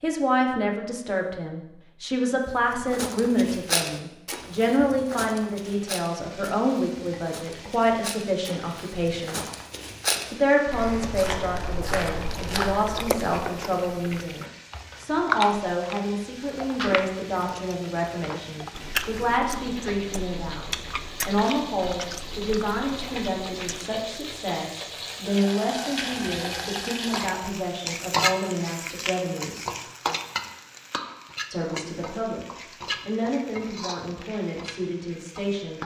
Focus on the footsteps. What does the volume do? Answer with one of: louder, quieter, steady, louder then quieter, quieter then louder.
quieter then louder.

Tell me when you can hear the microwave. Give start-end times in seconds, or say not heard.
not heard.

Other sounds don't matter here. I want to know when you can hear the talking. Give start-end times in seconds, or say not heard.
0.0-9.4, 10.3-29.8, 31.5-35.8.